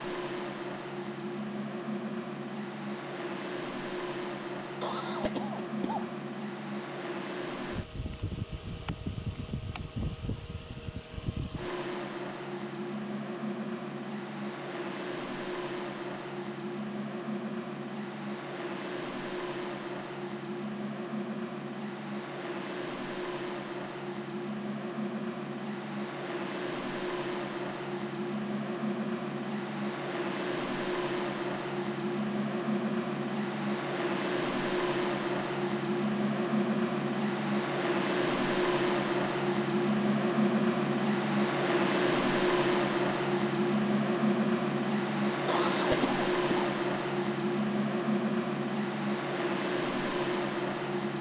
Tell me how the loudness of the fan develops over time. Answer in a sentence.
The loudness of the fan goes up.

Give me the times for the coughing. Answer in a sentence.
The coughing can be heard from 4.8 to 6.2 s and from 45.5 to 46.7 s.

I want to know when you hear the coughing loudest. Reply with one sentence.
The loudest moment of the coughing is at 46 seconds.